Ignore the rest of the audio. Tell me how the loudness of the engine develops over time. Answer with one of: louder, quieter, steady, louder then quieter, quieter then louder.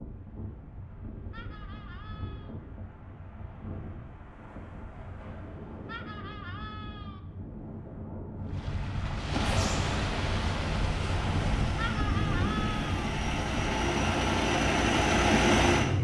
louder.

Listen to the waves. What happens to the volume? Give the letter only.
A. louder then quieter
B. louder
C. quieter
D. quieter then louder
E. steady
B.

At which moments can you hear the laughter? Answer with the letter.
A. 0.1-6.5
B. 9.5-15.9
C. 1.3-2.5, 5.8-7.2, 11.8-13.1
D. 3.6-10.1
C.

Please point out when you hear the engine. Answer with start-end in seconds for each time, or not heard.
9.5-15.9.